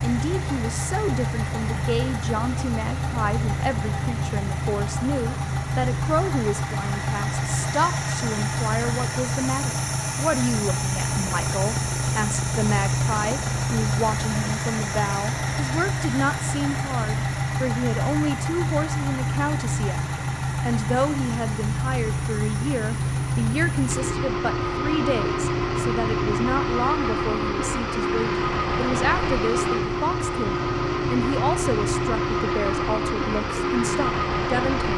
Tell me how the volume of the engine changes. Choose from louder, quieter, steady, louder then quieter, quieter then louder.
steady.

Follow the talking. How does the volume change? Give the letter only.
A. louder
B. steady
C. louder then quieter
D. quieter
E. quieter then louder
B.